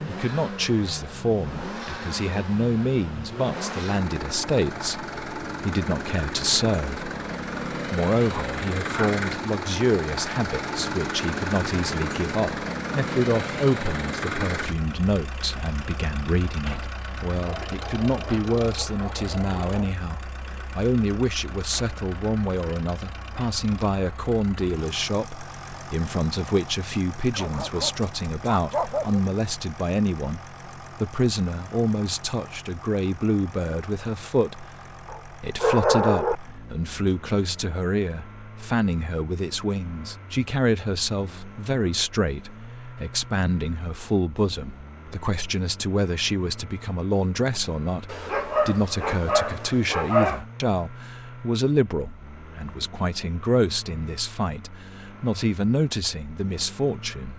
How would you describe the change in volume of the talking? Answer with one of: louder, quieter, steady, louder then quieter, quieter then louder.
steady.